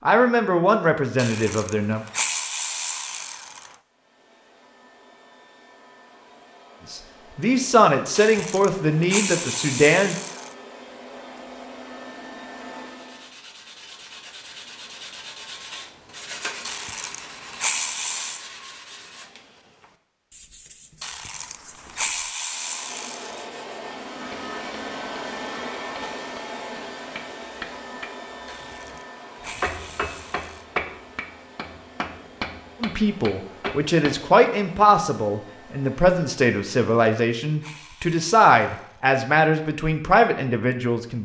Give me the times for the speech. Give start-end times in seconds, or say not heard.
0.1-2.0, 6.9-10.2, 32.8-41.2.